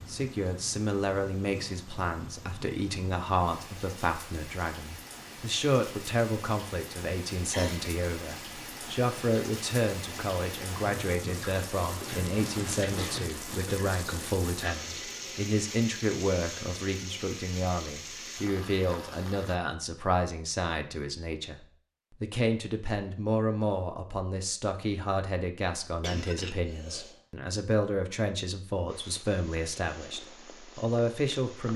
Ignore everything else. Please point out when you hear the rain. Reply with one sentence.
The rain can be heard from 0.0 to 19.6 s.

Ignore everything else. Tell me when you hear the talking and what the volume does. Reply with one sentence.
The talking can be heard from 0.1 to 31.7 s, at a steady volume.